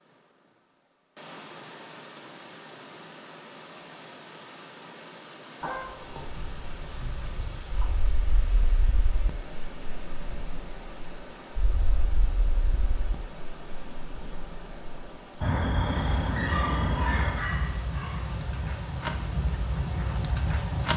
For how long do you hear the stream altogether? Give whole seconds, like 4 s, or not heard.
21 s.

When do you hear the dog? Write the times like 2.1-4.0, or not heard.
5.6-7.9, 16.4-18.2.